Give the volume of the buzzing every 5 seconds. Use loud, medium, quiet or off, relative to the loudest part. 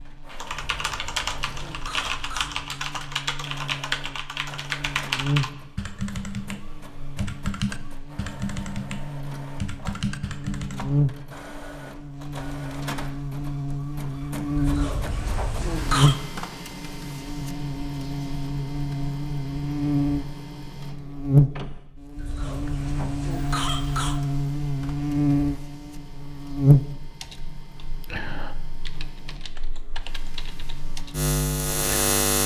quiet, medium, medium, loud, loud, loud, loud.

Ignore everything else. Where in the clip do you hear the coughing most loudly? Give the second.
16 s.